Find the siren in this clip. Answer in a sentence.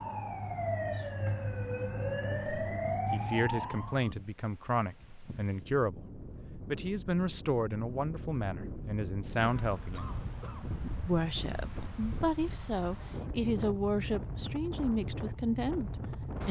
You can hear the siren from 0.0 to 4.1 s.